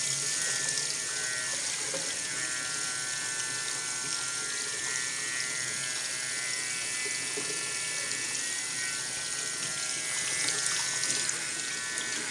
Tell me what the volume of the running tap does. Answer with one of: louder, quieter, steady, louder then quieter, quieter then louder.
steady.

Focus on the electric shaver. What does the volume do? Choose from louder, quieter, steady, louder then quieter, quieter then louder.
steady.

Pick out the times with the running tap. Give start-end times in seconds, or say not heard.
0.0-12.2.